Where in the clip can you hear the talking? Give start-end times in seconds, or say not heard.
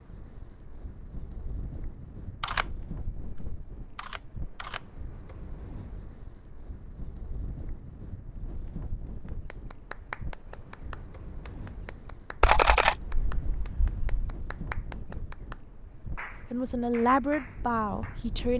16.5-18.5.